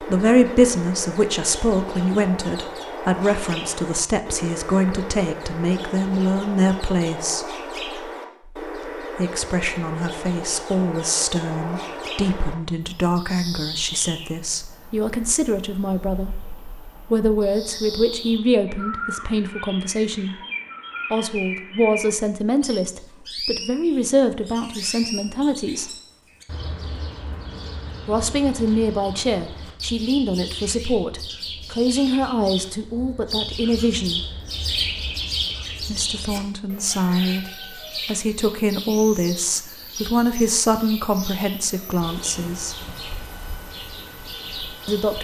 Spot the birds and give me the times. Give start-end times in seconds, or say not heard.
0.0-45.1.